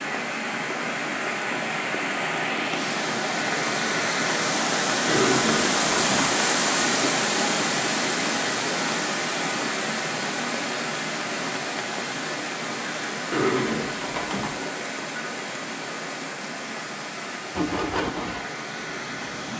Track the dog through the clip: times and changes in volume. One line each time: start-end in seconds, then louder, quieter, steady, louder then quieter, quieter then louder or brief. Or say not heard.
not heard.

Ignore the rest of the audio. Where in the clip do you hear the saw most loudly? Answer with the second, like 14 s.
18 s.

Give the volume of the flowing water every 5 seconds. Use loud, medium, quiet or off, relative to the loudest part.
loud, loud, medium, medium.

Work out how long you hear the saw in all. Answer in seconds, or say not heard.
2 s.